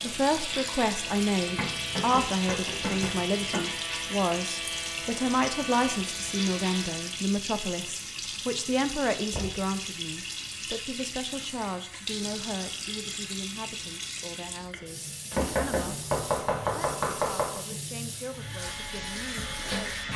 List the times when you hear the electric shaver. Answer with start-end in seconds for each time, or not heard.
0.0-7.3, 18.2-20.1.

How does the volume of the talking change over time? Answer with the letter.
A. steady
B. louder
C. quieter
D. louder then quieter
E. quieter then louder
C.